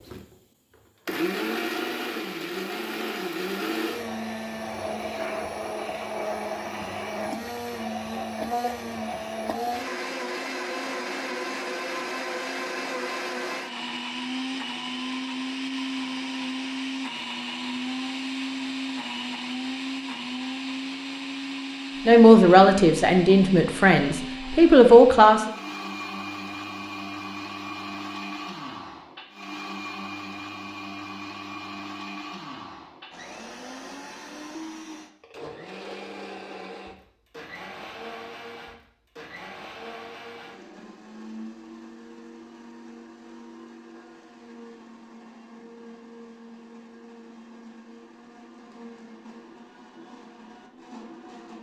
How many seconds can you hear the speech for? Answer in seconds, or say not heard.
3 s.